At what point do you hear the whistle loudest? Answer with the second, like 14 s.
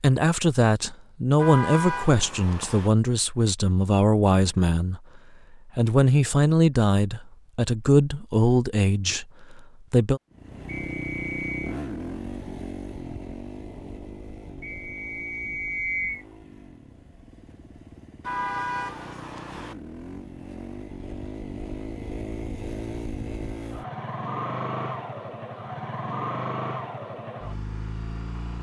16 s.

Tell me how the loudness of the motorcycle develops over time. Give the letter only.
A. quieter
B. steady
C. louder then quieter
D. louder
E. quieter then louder
E.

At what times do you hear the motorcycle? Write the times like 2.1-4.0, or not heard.
10.3-28.5.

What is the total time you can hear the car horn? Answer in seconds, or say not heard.
3 s.